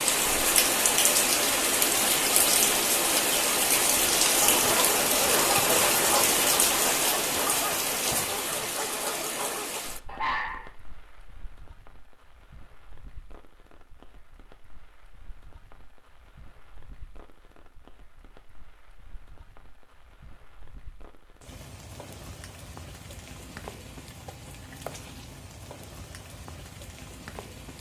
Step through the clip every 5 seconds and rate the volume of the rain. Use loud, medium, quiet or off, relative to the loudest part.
loud, loud, quiet, quiet, quiet, quiet.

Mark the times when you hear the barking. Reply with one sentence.
You can hear the barking from 4.2 to 10.7 s.